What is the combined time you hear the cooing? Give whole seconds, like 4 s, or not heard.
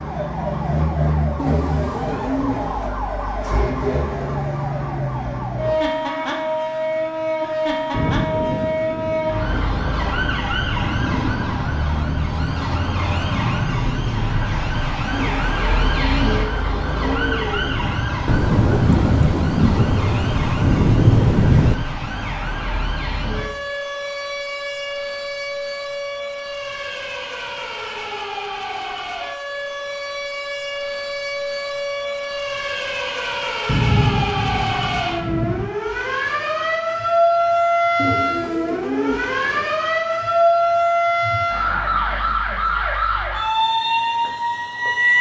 6 s.